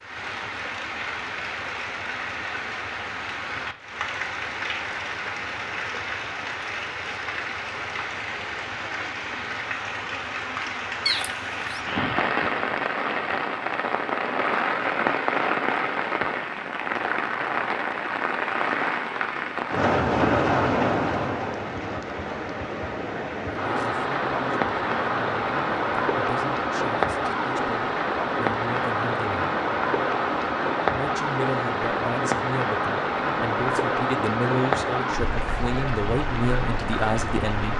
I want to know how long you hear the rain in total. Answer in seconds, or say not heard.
38 s.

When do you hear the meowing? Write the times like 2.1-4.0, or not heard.
11.1-11.8.